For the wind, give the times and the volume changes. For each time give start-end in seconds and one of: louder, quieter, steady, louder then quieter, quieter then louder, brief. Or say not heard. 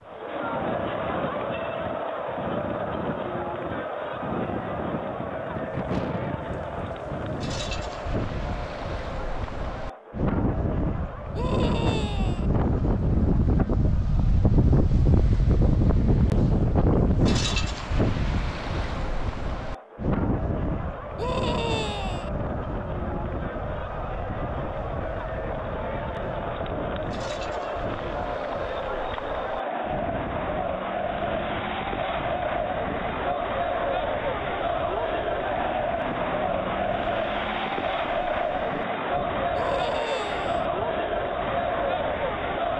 0.0-42.7 louder then quieter.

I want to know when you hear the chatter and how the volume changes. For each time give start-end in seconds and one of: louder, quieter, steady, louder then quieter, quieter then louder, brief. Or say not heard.
0.0-42.7 quieter then louder.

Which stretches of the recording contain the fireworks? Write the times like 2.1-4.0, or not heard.
not heard.